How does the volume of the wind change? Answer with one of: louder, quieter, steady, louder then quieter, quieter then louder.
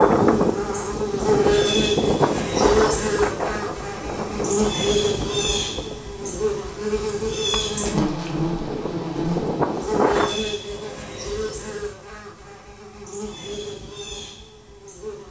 quieter then louder.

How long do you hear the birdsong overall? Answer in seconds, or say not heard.
not heard.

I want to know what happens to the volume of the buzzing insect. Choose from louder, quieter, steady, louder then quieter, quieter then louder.
quieter.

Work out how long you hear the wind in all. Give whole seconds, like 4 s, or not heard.
10 s.